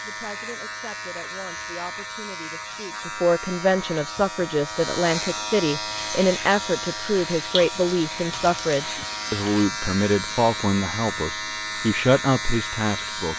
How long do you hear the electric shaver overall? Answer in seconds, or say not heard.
13 s.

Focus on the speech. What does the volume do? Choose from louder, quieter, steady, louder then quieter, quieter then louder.
louder.